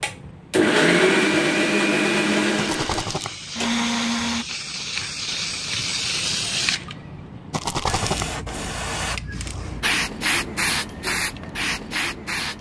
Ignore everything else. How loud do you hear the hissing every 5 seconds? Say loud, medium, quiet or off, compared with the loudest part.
medium, loud, loud.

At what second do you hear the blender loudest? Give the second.
1 s.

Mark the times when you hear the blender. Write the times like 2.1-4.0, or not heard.
0.0-4.5.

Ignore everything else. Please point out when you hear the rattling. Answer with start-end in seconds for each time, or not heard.
2.5-3.3, 7.5-8.3.